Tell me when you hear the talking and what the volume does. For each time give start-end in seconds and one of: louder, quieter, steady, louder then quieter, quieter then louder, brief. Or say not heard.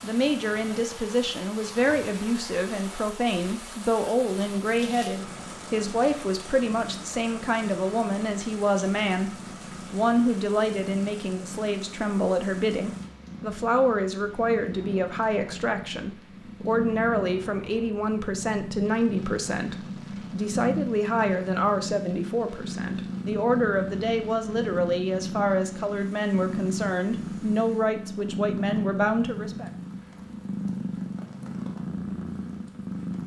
0.0-29.7 steady.